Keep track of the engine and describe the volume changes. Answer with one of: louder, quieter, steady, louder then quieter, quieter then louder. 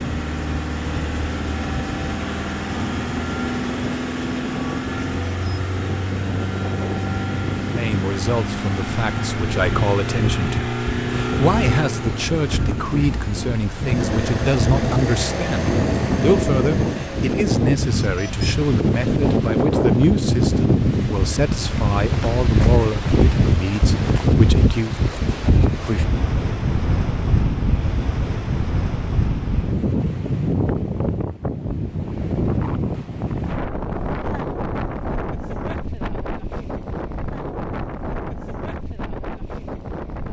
steady.